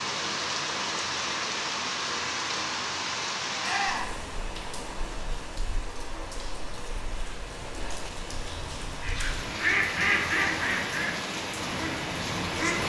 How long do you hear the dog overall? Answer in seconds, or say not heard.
not heard.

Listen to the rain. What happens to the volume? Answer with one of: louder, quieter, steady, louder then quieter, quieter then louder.
quieter then louder.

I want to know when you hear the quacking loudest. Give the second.
10 s.